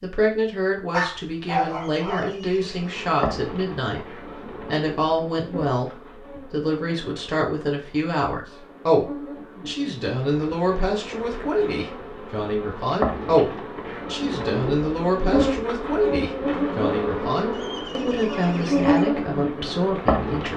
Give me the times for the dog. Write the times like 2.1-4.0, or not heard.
0.9-2.5.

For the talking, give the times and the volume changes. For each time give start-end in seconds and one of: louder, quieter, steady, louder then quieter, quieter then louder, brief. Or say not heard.
0.0-20.5 steady.